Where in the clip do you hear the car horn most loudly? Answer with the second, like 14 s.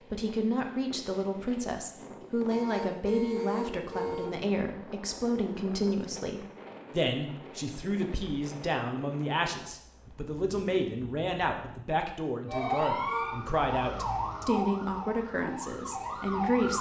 3 s.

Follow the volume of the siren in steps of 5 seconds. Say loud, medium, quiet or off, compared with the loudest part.
off, off, loud, loud.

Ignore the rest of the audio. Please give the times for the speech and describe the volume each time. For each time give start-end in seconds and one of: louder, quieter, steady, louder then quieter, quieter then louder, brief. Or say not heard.
0.1-16.7 steady.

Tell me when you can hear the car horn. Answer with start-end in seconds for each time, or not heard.
2.5-4.3, 12.5-13.3.